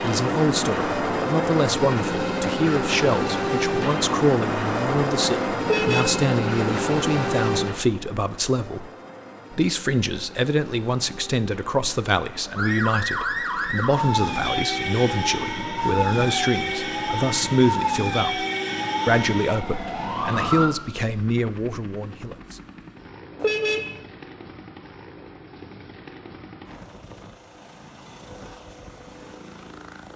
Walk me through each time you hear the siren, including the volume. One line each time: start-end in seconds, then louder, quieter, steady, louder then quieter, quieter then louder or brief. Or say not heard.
12.6-20.7 steady.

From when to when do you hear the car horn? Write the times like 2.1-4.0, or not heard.
5.7-6.2, 23.4-24.0.